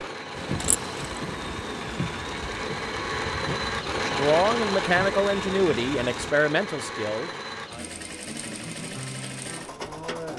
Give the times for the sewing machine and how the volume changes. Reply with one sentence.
You can hear the sewing machine from 0.0 to 10.3 s, getting louder then quieter.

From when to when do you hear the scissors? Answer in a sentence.
The scissors can be heard from 0.6 to 1.2 s.